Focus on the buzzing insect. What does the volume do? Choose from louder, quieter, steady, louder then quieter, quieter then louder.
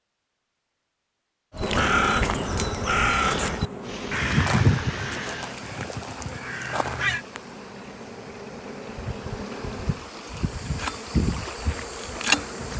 quieter then louder.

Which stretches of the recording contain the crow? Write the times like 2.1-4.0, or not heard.
1.5-7.2.